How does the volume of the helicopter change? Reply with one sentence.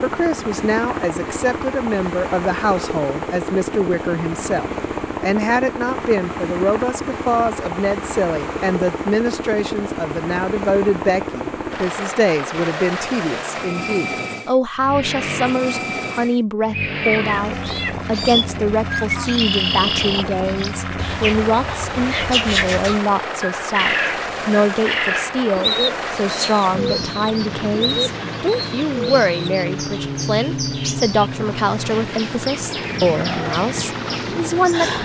The volume of the helicopter stays about the same.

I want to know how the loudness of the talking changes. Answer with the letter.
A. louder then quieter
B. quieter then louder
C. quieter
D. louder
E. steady
E.